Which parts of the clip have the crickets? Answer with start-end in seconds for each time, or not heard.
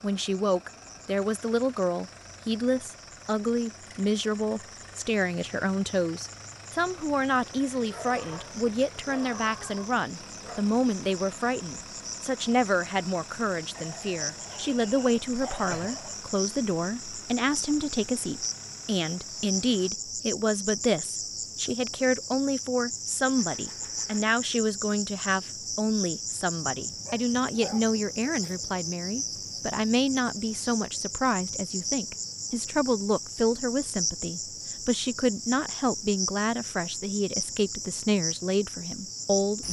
0.0-39.6.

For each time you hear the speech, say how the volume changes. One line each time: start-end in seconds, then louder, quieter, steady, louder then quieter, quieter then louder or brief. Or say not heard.
0.0-39.6 steady.